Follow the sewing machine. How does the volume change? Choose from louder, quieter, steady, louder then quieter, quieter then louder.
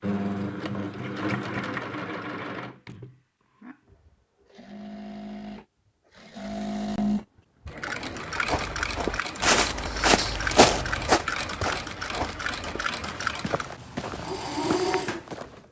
quieter then louder.